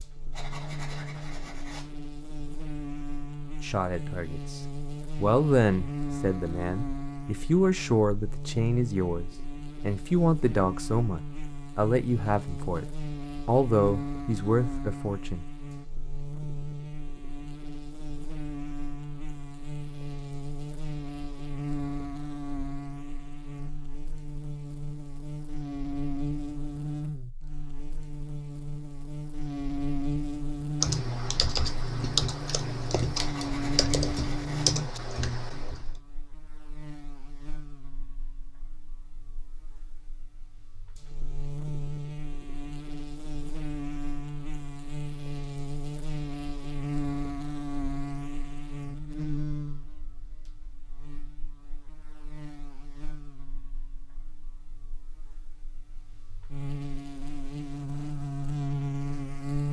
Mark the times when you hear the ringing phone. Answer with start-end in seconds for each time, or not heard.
not heard.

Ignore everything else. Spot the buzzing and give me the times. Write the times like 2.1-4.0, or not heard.
0.0-59.6.